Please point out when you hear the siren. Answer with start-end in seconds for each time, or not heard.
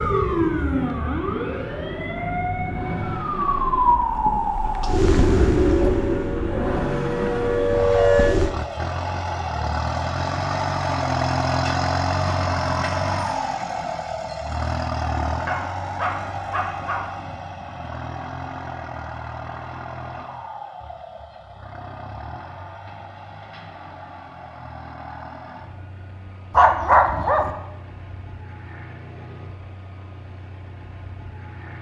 0.0-8.5.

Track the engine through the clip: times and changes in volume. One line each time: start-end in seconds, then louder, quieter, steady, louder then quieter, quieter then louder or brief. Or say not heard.
0.0-31.7 louder then quieter.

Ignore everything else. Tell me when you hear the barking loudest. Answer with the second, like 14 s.
27 s.